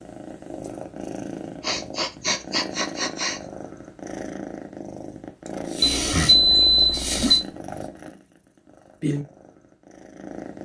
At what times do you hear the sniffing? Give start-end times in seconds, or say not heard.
1.6-3.4, 5.5-7.4.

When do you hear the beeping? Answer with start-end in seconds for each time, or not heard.
5.8-7.4.